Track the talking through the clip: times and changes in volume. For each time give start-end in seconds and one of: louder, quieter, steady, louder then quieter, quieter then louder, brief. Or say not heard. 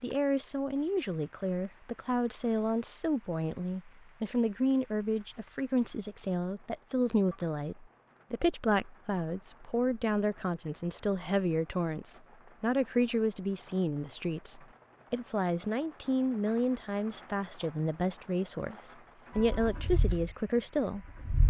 0.0-21.4 steady.